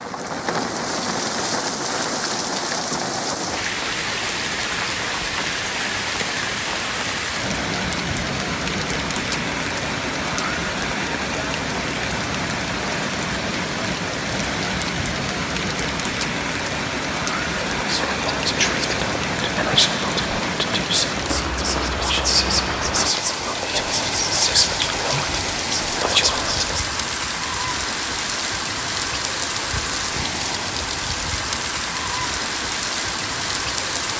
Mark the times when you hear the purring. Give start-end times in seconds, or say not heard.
not heard.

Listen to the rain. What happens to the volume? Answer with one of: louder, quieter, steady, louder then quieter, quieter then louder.
steady.